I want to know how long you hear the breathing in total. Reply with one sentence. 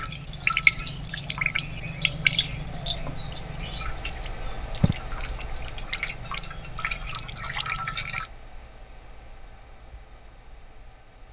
You can't hear the breathing here.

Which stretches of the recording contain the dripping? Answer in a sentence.
You can hear the dripping from 0.0 to 8.3 s.